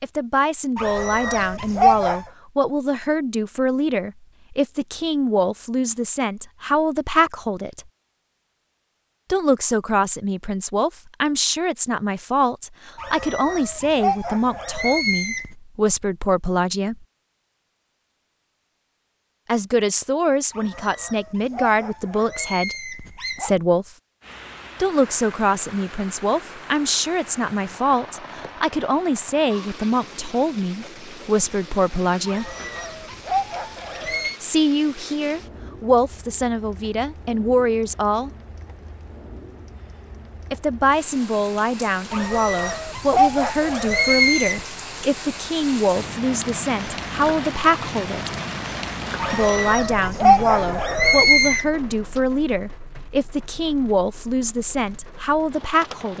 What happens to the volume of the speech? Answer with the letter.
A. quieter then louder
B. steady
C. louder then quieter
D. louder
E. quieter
B.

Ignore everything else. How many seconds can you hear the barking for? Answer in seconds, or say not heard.
14 s.